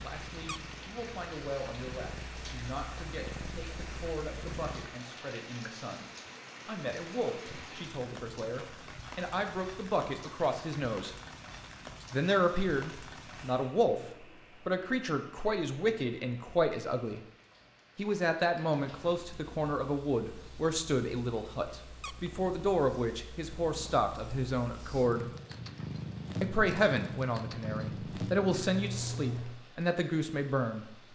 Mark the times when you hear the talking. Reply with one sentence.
The talking can be heard from 0.0 to 6.0 s, from 6.7 to 11.2 s, from 12.1 to 17.2 s, from 17.9 to 25.2 s and from 26.4 to 30.9 s.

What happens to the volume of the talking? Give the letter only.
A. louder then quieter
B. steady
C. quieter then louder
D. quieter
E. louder
E.